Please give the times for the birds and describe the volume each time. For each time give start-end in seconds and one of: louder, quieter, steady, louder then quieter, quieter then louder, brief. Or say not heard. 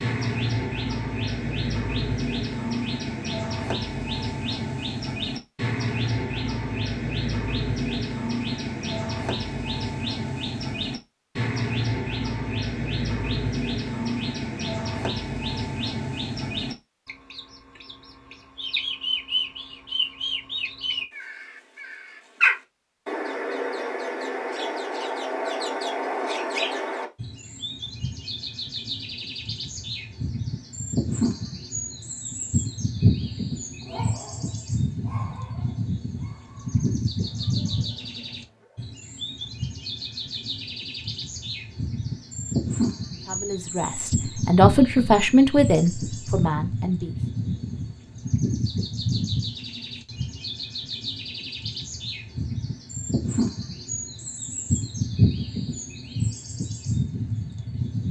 0.0-58.0 steady.